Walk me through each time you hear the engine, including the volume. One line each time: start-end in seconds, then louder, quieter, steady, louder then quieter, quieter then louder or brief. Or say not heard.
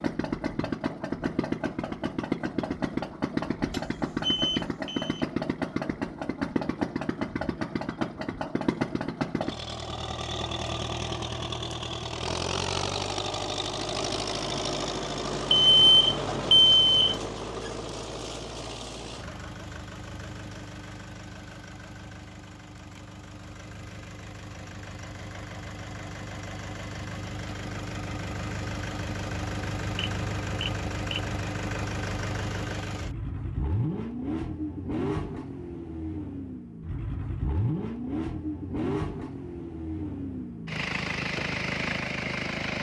0.0-42.7 quieter then louder.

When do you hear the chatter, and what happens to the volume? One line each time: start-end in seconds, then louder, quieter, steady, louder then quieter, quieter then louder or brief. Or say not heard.
not heard.